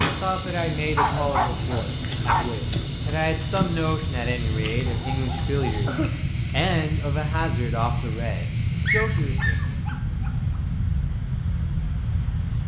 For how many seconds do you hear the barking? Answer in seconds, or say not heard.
5 s.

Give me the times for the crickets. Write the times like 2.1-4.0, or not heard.
0.0-9.9.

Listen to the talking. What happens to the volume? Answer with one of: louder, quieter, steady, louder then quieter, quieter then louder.
steady.